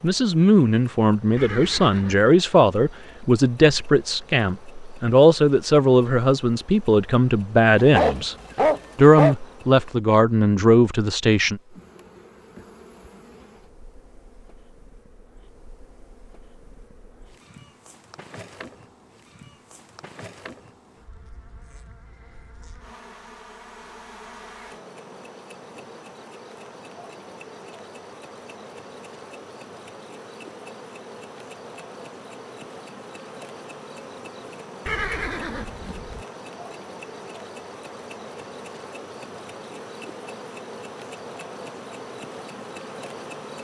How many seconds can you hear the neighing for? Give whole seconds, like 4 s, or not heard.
2 s.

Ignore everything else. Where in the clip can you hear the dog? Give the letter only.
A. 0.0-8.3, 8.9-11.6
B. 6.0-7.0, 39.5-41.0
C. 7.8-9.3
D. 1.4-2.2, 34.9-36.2
C.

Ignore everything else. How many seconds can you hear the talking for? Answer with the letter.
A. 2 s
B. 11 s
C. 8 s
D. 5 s
B.